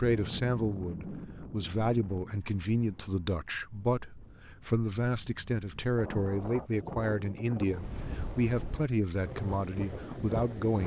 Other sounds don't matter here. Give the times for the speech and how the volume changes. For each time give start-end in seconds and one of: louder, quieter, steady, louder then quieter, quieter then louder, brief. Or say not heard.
0.0-10.8 steady.